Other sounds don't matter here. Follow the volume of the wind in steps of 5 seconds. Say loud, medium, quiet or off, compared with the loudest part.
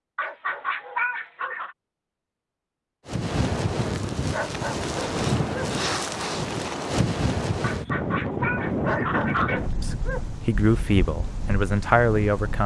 loud, loud, medium.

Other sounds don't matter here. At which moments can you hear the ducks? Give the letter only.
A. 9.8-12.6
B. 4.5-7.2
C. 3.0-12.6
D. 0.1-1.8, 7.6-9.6
D.